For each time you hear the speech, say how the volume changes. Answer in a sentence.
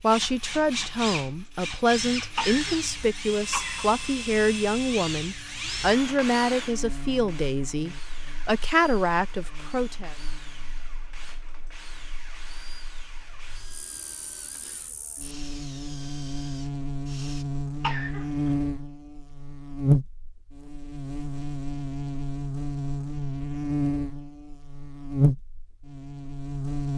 You can hear the speech from 0.0 to 10.2 s, at a steady volume.